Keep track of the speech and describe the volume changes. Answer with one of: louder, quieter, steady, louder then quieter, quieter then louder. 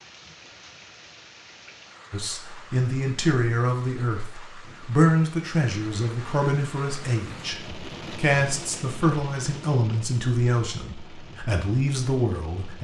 steady.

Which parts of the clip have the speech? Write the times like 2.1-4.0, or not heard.
2.1-12.8.